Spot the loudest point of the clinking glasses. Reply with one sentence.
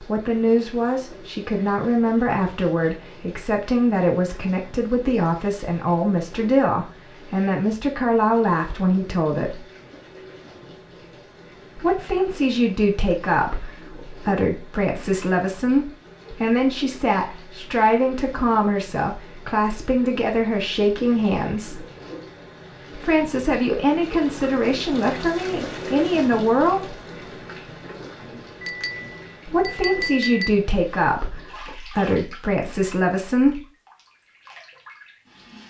The loudest moment of the clinking glasses is at 30 seconds.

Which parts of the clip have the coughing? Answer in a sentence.
The coughing can't be heard in this clip.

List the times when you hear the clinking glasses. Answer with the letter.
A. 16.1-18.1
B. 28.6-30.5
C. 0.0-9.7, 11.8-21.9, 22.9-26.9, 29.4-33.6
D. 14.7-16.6
B.